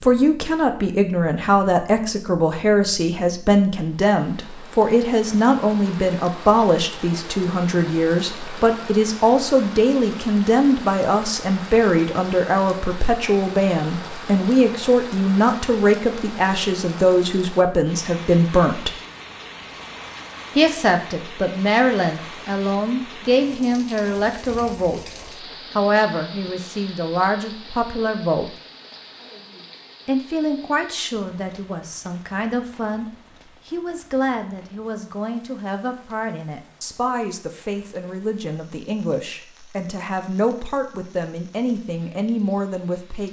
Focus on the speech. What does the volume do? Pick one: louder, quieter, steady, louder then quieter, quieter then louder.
quieter.